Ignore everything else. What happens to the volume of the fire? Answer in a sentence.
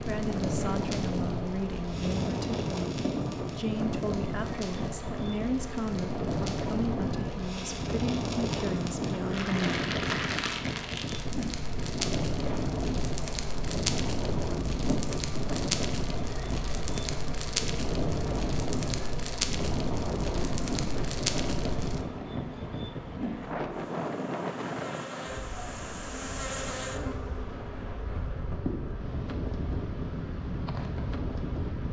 The loudness of the fire goes up.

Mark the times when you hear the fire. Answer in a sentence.
The fire can be heard from 0.0 to 22.1 s.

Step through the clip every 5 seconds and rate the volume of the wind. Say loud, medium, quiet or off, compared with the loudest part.
loud, loud, loud, loud, loud, medium, loud.